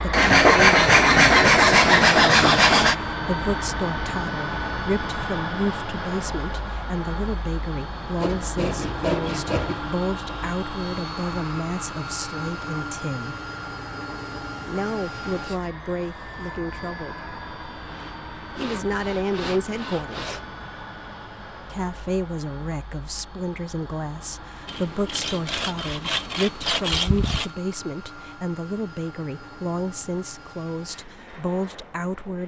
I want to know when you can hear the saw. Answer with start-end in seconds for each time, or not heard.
0.1-3.0, 8.2-9.8, 17.9-20.5, 24.6-27.5.